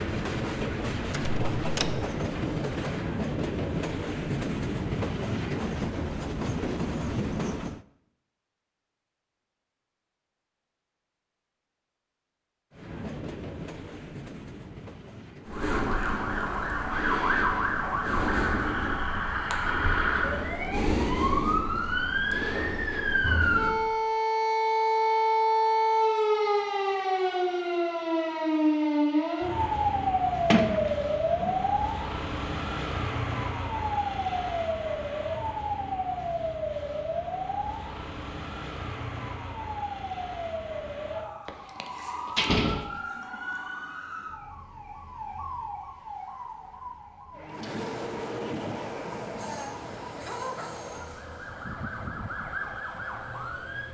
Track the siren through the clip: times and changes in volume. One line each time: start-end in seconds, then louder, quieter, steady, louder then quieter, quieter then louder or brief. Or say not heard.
15.4-53.8 quieter.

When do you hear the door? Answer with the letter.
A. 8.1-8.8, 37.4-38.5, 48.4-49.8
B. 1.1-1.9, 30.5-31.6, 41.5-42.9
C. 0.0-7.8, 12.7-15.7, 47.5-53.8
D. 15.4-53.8
B.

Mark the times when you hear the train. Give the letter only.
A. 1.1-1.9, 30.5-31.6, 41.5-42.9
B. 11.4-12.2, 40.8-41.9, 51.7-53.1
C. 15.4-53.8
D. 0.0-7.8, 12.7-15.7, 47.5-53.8
D.